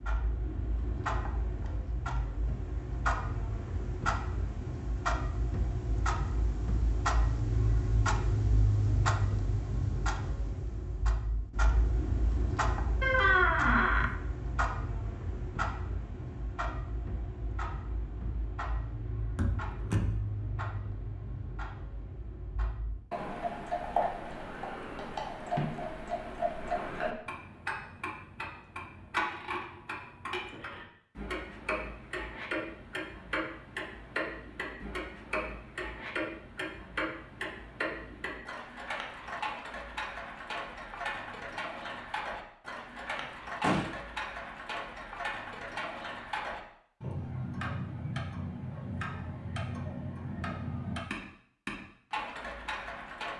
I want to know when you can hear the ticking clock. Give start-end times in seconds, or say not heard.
0.0-53.3.